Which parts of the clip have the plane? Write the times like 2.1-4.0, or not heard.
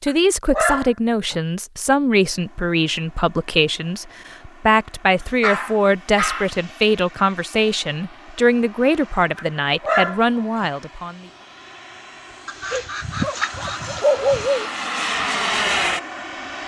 2.3-16.6.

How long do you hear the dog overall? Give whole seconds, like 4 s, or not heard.
6 s.